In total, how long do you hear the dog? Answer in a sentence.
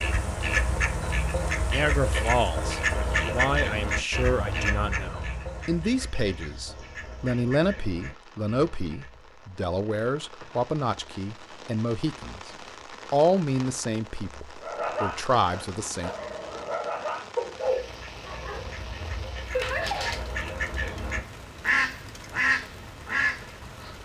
The dog can be heard for 6 seconds in total.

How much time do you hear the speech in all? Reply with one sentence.
You can hear the speech for 14 seconds altogether.